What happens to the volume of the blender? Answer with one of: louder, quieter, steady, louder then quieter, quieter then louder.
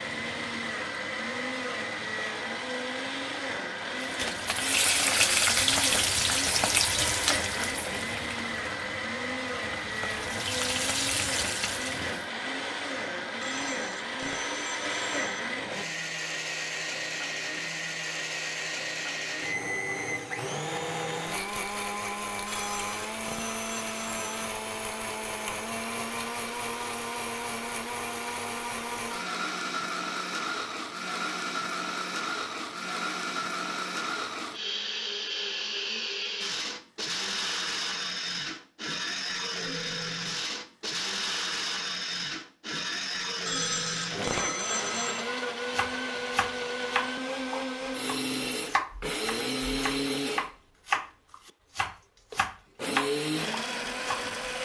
steady.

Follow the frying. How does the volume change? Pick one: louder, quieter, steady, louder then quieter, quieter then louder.
quieter then louder.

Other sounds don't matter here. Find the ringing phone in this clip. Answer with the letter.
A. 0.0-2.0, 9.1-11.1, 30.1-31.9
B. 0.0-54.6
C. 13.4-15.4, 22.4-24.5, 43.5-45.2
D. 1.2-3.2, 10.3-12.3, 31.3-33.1
C.